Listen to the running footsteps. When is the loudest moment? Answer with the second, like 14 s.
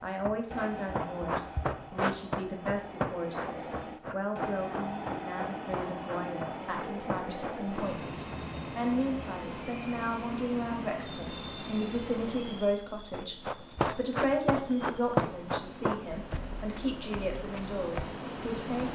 15 s.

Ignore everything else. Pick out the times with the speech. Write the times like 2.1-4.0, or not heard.
0.0-18.8.